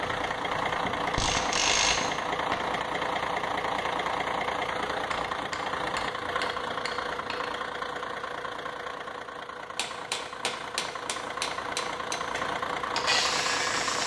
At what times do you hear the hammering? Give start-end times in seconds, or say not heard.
0.8-2.9, 5.1-7.5, 9.8-12.2.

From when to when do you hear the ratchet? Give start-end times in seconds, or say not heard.
0.0-1.9, 12.2-14.0.